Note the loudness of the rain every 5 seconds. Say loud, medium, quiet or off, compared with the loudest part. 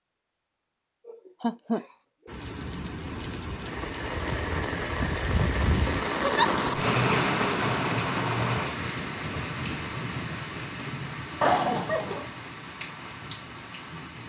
medium, loud, medium.